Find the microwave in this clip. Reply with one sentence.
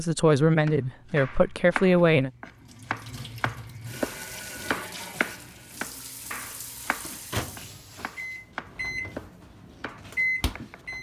The microwave can be heard from 6.5 to 10.9 s.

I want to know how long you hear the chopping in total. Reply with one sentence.
You can hear the chopping for 10 seconds altogether.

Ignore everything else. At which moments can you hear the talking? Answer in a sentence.
The talking can be heard from 0.0 to 2.3 s.